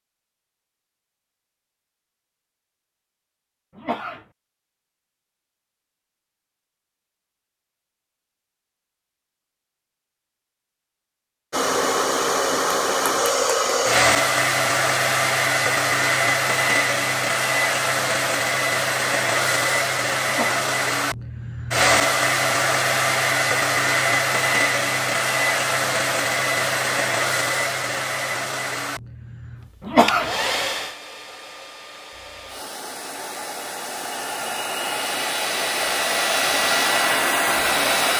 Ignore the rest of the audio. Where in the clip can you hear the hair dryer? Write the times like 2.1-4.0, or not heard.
11.5-38.1.